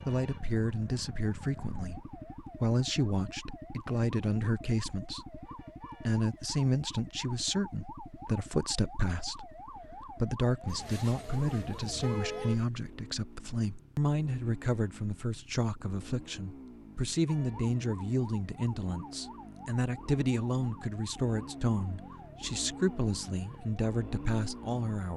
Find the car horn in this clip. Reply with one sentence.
The car horn can be heard from 10.7 to 12.7 s.